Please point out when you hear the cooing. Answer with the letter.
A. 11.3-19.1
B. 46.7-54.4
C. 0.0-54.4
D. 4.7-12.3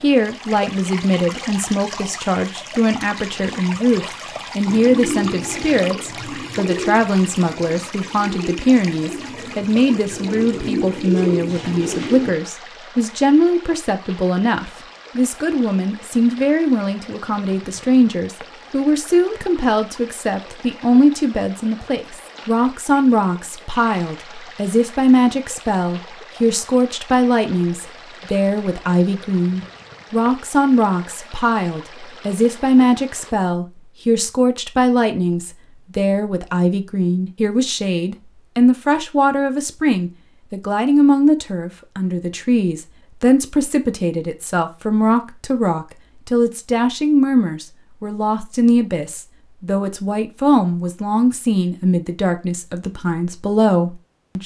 D.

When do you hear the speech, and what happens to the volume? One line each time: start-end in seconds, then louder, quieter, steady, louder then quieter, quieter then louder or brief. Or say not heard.
0.0-54.4 steady.